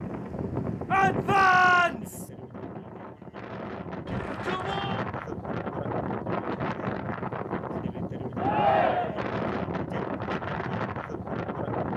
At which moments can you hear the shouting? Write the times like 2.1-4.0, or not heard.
0.9-2.2, 4.0-5.0, 8.3-9.3.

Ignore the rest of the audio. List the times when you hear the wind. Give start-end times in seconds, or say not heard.
0.0-11.9.